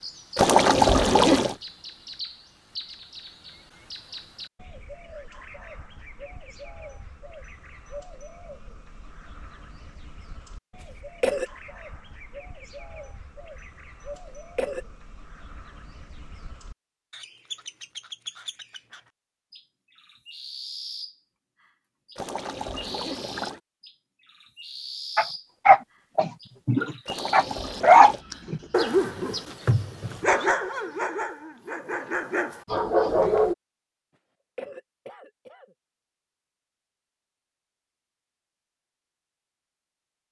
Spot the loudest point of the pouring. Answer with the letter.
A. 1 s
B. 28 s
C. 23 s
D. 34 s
A.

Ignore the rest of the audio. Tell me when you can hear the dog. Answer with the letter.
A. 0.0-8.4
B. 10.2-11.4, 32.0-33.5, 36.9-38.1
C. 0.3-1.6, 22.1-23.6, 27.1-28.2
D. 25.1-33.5
D.